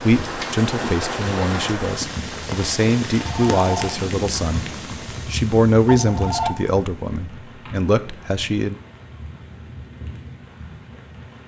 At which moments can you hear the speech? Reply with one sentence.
You can hear the speech from 0.0 to 4.7 s and from 5.2 to 8.8 s.